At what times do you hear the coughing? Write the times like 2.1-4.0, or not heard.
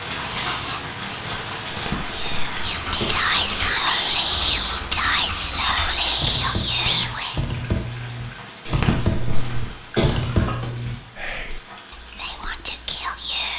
1.7-3.7, 8.7-10.7.